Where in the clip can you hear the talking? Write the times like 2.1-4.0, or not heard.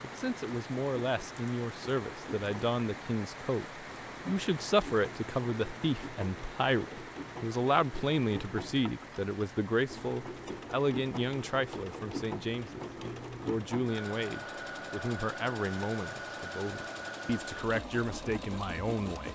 0.0-19.3.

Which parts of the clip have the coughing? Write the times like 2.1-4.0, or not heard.
not heard.